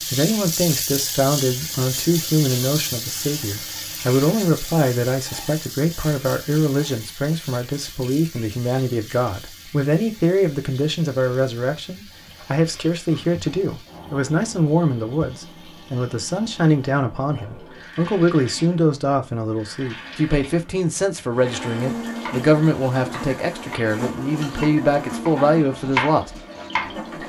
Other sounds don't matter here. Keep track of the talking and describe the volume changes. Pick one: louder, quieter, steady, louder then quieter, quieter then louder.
steady.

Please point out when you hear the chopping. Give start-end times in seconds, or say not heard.
22.2-27.0.